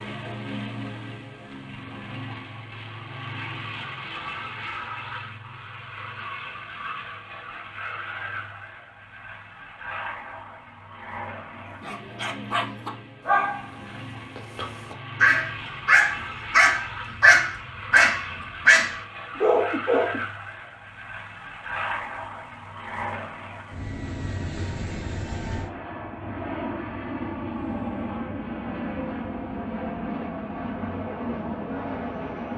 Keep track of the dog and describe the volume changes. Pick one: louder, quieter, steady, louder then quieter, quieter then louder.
louder.